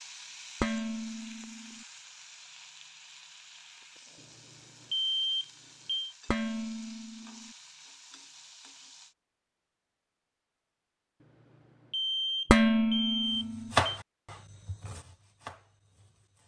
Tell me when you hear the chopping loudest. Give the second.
14 s.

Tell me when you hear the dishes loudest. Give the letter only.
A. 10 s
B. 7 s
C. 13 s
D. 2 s
C.